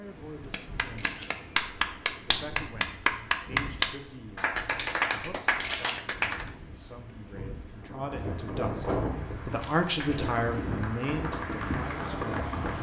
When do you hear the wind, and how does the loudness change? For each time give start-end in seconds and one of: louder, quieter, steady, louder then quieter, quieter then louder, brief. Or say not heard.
0.0-12.7 louder.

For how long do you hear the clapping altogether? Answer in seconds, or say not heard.
9 s.